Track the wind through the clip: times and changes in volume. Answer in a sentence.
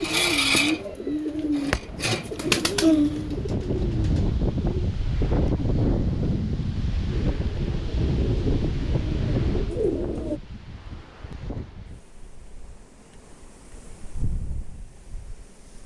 The wind can be heard from 0.0 to 15.8 s, getting louder then quieter.